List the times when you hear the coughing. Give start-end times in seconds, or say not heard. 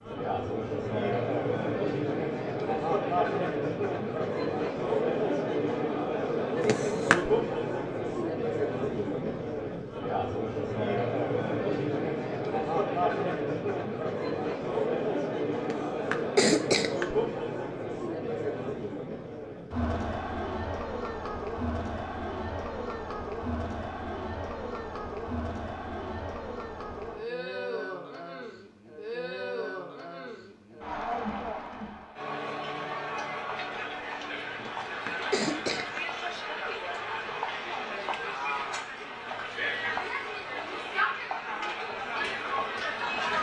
6.6-7.2, 15.6-17.1, 34.5-36.0.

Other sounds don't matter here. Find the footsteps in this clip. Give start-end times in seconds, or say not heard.
not heard.